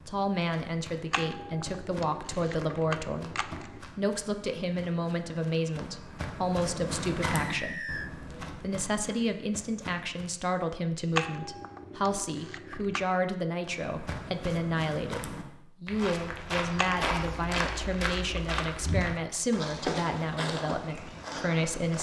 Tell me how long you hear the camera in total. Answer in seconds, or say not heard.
7 s.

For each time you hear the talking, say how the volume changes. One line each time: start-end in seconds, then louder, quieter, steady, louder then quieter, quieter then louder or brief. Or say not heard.
0.1-21.9 steady.